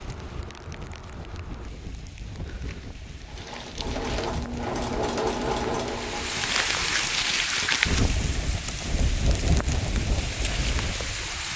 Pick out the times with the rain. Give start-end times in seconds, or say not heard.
0.0-11.5.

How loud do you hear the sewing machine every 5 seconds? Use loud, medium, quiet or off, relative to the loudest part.
loud, loud, off.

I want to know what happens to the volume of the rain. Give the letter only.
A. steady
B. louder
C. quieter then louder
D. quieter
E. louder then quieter
B.